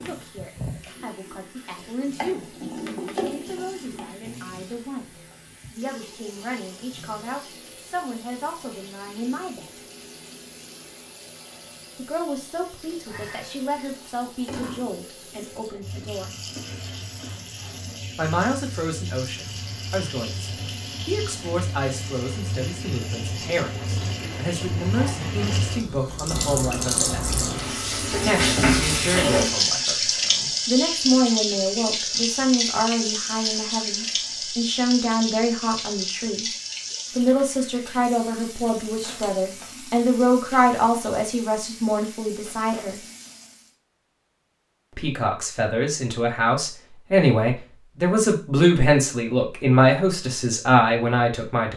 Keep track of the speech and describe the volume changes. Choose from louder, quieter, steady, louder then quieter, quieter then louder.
louder.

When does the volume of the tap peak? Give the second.
29 s.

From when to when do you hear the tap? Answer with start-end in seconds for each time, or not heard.
0.0-43.8.